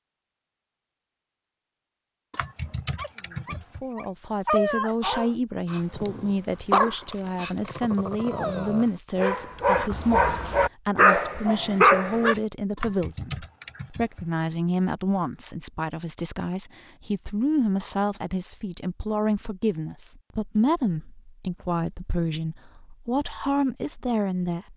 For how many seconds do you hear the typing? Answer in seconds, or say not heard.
3 s.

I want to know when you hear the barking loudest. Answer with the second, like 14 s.
12 s.